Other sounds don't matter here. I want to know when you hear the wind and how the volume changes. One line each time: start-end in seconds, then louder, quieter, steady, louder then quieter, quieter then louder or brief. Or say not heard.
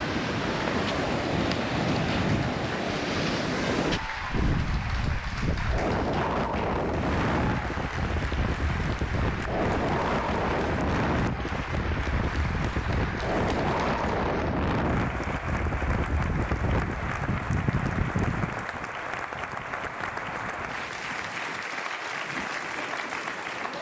0.0-23.7 quieter.